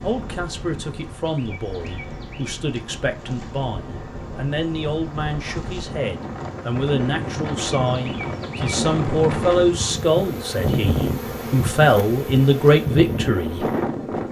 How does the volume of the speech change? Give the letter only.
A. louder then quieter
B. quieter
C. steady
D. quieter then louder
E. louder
E.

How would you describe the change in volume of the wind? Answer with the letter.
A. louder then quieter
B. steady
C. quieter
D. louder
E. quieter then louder
D.